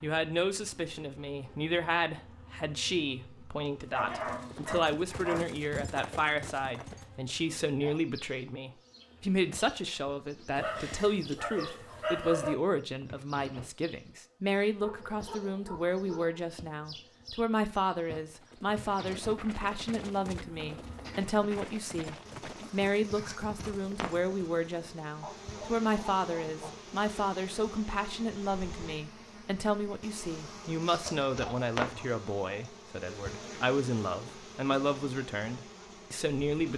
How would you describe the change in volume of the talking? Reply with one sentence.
The volume of the talking stays about the same.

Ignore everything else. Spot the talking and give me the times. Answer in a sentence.
You can hear the talking from 0.0 to 36.7 s.